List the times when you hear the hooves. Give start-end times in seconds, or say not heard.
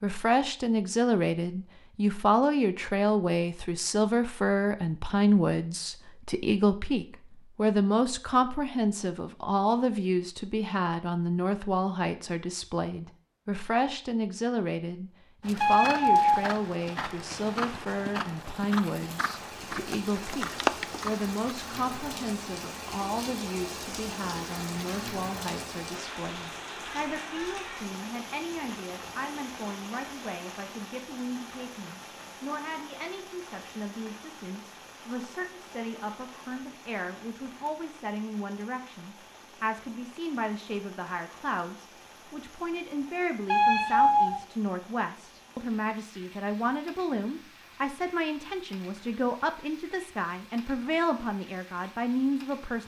15.4-21.4.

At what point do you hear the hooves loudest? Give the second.
21 s.